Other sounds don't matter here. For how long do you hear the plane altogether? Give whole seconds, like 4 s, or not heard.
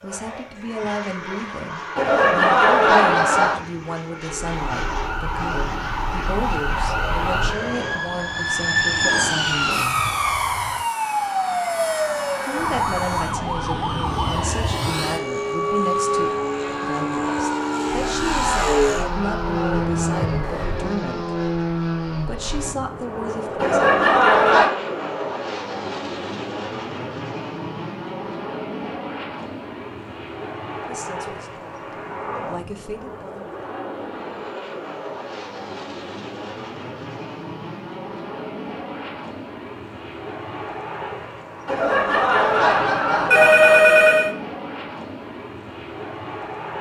47 s.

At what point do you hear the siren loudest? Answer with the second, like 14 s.
9 s.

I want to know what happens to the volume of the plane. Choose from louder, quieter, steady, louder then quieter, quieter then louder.
louder then quieter.